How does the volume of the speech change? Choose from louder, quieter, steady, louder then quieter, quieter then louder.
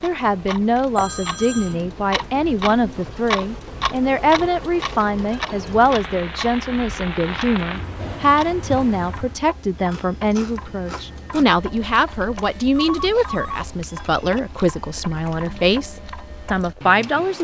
steady.